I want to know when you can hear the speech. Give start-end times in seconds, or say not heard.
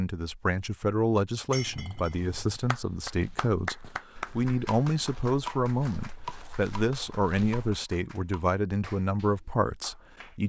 0.0-10.4.